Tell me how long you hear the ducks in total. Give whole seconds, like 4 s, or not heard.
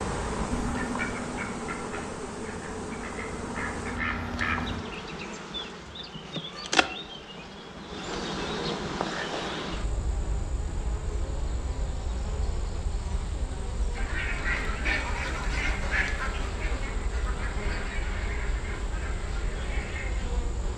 11 s.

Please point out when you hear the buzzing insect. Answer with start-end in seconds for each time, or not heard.
0.0-20.7.